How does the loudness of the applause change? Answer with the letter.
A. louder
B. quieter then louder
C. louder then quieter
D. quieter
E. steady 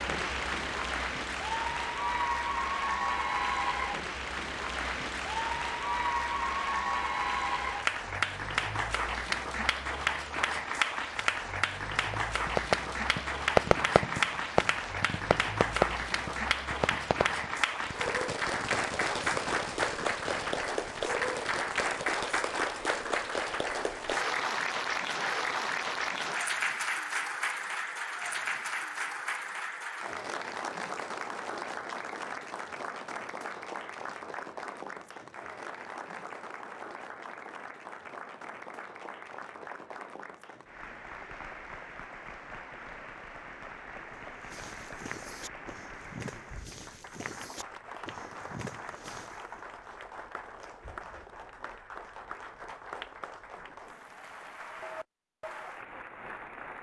D.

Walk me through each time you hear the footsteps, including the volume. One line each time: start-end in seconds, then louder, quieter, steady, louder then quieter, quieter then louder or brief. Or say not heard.
44.1-49.6 steady.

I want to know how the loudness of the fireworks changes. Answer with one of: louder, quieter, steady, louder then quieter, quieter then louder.
quieter.